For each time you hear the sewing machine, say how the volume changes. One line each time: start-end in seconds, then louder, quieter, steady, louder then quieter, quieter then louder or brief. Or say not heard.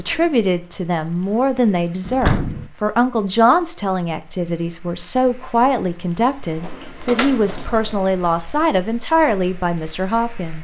not heard.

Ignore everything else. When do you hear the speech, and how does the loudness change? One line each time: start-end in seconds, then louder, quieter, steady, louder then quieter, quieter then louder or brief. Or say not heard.
0.0-10.6 steady.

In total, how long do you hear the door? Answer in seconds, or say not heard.
2 s.